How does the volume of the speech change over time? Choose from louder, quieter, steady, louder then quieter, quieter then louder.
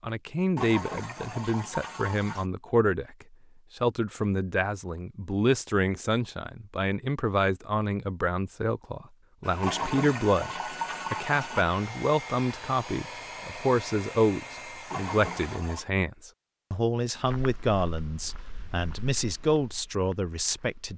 steady.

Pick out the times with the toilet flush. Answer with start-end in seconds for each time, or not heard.
0.6-2.5, 9.6-11.7, 14.9-15.8.